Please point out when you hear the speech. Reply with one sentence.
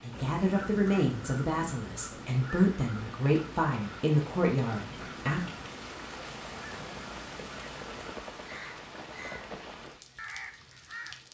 The speech can be heard from 0.0 to 5.5 s.